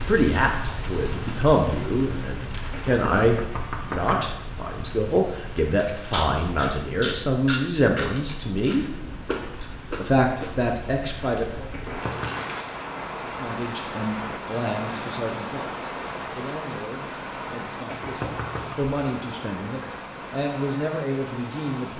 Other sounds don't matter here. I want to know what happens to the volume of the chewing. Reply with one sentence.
The volume of the chewing goes down.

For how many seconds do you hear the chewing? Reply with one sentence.
You can hear the chewing for 7 seconds altogether.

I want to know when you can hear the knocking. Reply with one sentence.
The knocking can be heard from 2.7 to 4.3 s, from 11.7 to 12.4 s and from 17.9 to 18.8 s.